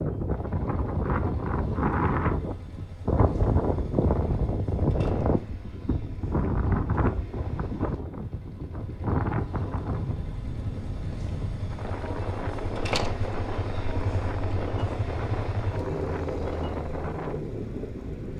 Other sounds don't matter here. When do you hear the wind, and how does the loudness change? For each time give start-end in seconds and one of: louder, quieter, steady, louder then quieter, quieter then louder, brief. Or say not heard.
0.0-18.3 quieter.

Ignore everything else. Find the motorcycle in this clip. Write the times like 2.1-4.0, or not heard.
0.0-18.3.